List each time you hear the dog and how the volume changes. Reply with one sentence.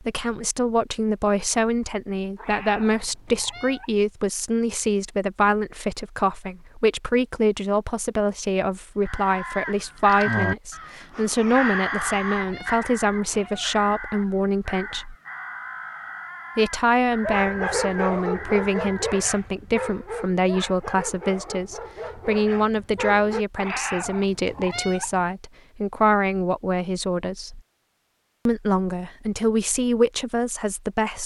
The dog can be heard from 17.2 to 23.4 s, getting quieter.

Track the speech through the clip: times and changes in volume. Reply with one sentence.
You can hear the speech from 0.0 to 15.2 s, at a steady volume; from 16.6 to 27.6 s, at a steady volume; and briefly from 28.4 to 31.2 s.